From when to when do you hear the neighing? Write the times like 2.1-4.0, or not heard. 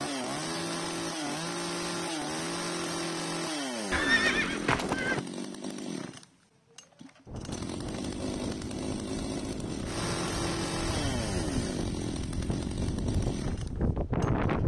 3.9-5.2.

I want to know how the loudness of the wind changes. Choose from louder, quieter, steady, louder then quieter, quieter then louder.
louder.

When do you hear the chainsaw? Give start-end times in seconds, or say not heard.
0.0-14.6.